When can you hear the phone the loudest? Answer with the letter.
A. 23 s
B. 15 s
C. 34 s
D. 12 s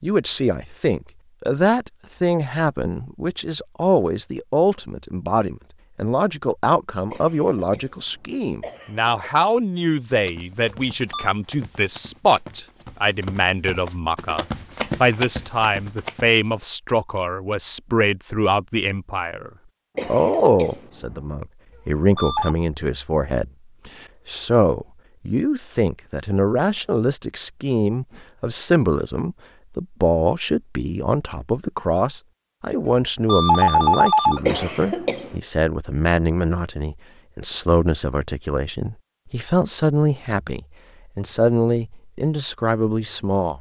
C.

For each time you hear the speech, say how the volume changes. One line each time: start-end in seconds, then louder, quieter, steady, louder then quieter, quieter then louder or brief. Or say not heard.
0.0-43.5 steady.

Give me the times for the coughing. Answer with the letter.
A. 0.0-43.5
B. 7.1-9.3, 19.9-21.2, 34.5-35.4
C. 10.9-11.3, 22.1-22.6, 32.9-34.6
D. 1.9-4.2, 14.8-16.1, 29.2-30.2
B.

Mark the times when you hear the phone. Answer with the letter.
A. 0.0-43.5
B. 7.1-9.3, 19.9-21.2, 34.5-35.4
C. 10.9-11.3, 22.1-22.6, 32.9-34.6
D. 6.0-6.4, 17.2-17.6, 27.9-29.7
C.